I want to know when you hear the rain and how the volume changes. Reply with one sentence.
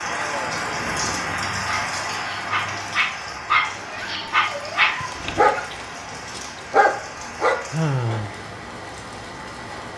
You can hear the rain from 0.0 to 9.9 s, getting quieter.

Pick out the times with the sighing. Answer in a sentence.
You can hear the sighing from 0.1 to 1.6 s and from 7.7 to 8.3 s.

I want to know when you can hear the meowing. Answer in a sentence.
You can hear the meowing from 3.9 to 5.1 s.